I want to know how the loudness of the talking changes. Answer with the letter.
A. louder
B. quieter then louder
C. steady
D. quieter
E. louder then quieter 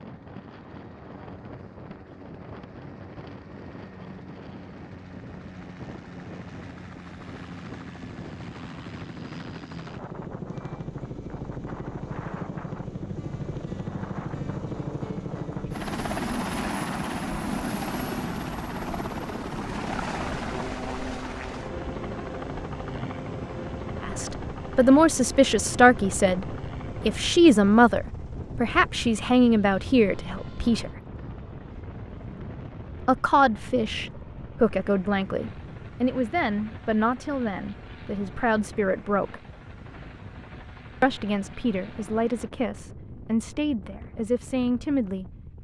D.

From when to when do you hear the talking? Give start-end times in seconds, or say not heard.
24.0-30.9, 33.0-39.4, 41.0-45.2.